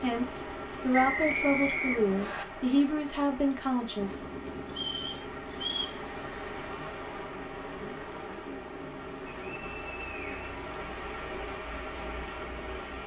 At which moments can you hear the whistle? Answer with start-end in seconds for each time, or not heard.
0.9-2.5, 4.7-6.0, 9.2-10.6.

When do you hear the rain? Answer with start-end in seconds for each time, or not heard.
0.0-13.0.